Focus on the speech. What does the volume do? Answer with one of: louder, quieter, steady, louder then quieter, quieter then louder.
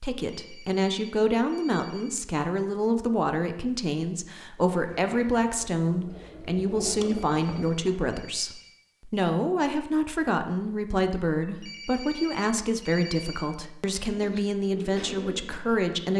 steady.